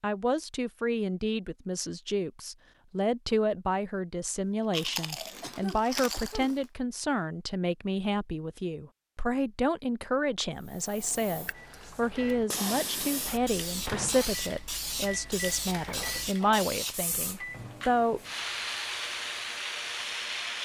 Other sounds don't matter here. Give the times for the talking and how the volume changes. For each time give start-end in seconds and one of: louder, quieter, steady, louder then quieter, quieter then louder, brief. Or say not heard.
0.0-18.2 steady.